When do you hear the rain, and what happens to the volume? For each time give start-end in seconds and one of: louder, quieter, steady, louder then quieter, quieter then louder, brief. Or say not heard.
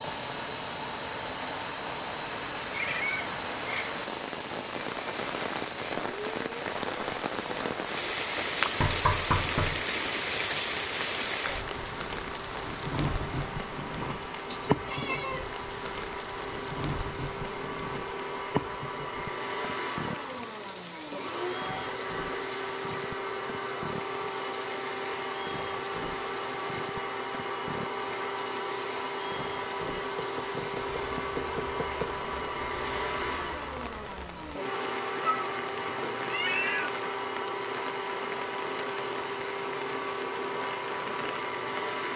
0.0-42.1 quieter.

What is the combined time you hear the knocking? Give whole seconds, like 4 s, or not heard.
3 s.